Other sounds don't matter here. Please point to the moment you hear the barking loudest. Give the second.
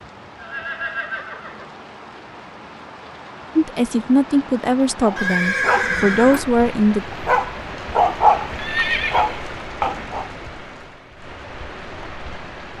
8 s.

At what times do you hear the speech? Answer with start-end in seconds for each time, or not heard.
3.5-7.0.